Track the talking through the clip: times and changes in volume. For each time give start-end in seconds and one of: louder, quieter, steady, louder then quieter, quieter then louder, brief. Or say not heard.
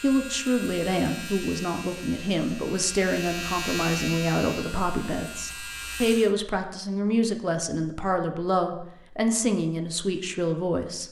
0.0-11.0 steady.